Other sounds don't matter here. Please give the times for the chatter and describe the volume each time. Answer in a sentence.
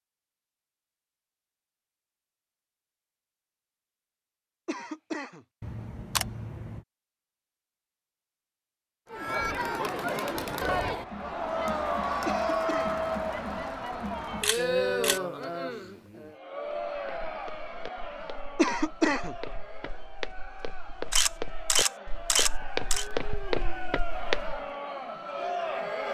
You can hear the chatter from 9.1 to 26.0 s, getting quieter then louder.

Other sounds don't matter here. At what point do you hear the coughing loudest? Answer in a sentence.
The volume of the coughing peaks at 19 seconds.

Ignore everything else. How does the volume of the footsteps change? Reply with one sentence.
The volume of the footsteps goes up.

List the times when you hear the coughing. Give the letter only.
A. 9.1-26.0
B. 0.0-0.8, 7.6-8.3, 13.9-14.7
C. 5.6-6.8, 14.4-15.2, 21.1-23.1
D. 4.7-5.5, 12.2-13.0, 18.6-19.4
D.